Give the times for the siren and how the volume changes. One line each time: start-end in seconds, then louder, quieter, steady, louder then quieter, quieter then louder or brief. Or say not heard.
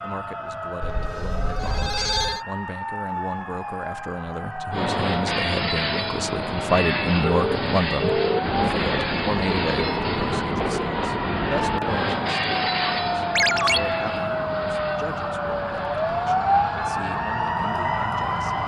0.0-18.6 louder.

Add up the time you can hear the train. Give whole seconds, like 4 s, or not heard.
14 s.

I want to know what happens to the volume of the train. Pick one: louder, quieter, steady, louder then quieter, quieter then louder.
quieter.